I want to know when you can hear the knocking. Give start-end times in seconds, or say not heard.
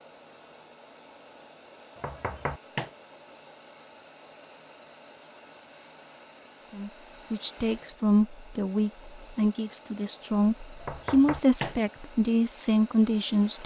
1.9-2.9, 10.8-11.8.